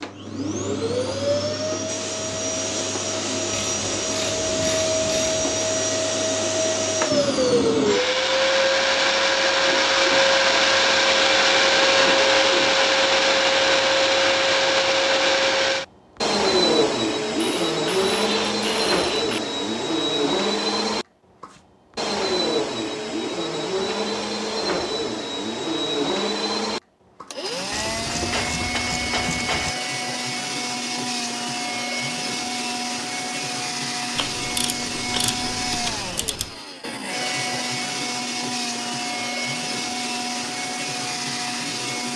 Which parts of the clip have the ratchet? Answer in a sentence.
You can hear the ratchet from 3.6 to 5.7 s, from 17.4 to 19.4 s, from 27.7 to 29.8 s and from 34.1 to 36.5 s.